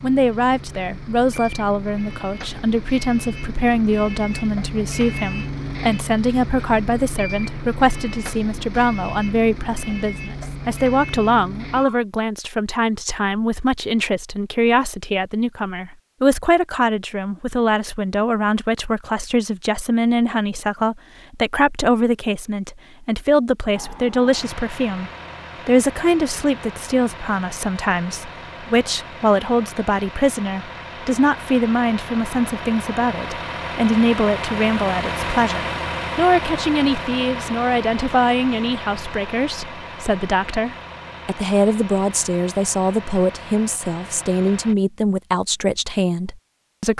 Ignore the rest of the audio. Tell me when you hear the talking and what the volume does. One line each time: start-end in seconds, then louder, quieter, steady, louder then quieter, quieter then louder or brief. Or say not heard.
0.0-46.9 steady.